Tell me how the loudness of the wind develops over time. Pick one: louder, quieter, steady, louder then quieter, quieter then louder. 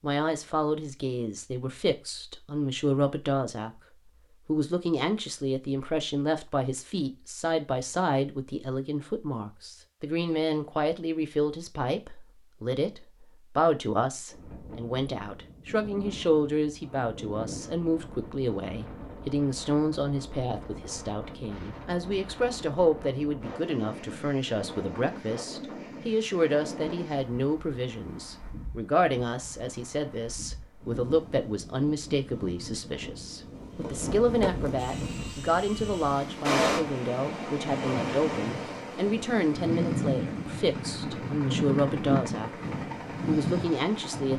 louder.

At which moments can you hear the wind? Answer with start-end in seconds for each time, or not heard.
14.3-44.3.